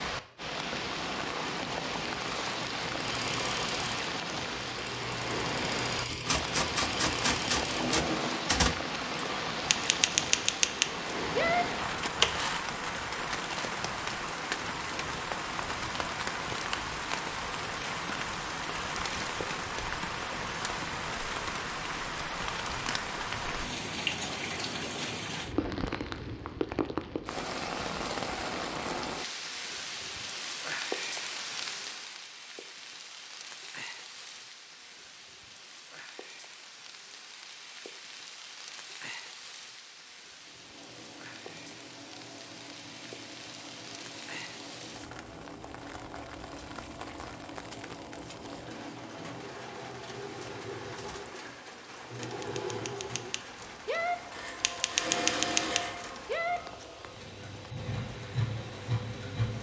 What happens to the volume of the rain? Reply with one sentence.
The volume of the rain goes down.